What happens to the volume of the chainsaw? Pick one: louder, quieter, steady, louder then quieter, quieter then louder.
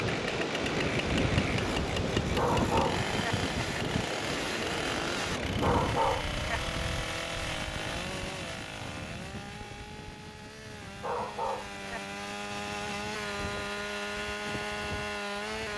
quieter then louder.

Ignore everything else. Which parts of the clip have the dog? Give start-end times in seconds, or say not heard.
2.4-3.4, 5.6-6.6, 11.0-12.0.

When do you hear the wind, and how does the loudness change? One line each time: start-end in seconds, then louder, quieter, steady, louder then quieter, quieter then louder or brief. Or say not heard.
0.0-15.7 quieter.